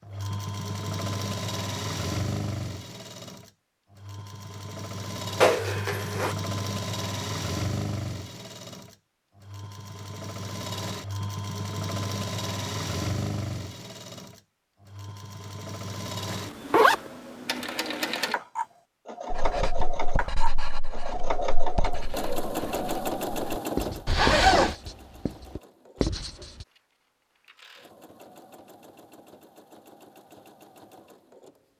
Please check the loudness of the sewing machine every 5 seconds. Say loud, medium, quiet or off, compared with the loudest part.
loud, loud, loud, loud, loud, quiet, quiet.